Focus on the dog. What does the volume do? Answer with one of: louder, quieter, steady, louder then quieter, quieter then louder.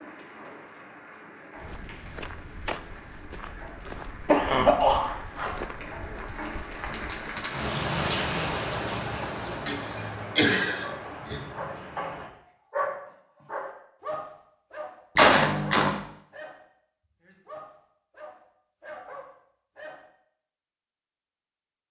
quieter.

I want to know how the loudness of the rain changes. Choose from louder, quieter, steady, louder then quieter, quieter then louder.
louder then quieter.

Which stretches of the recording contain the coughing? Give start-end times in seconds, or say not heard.
3.9-5.5, 9.7-11.4, 15.2-16.0.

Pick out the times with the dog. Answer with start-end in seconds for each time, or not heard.
10.8-20.1.